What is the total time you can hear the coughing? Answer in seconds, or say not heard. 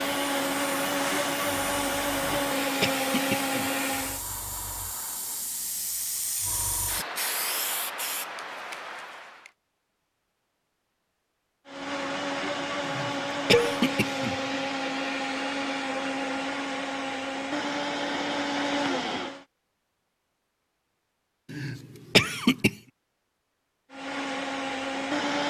5 s.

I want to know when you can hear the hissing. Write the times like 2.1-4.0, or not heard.
0.0-9.5.